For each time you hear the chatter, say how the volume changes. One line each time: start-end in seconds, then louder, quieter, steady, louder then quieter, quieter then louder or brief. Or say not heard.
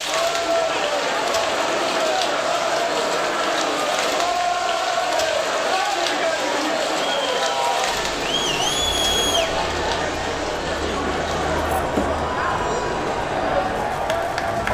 0.0-14.6 steady.